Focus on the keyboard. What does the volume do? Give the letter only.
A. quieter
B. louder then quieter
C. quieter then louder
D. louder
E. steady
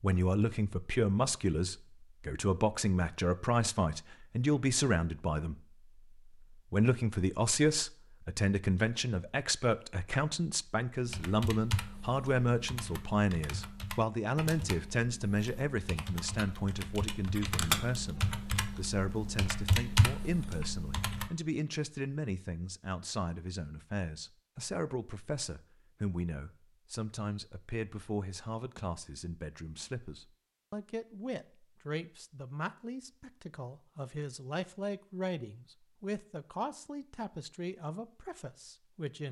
D.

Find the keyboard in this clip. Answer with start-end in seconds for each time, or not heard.
11.1-21.3.